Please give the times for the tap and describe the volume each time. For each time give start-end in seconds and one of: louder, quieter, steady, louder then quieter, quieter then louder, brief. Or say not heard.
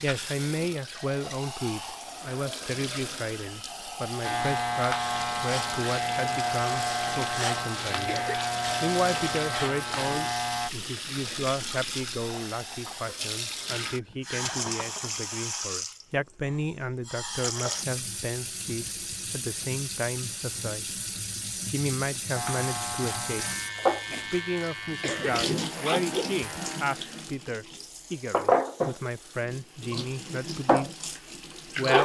0.0-32.0 louder.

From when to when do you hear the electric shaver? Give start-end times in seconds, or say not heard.
4.2-10.7, 22.3-26.9.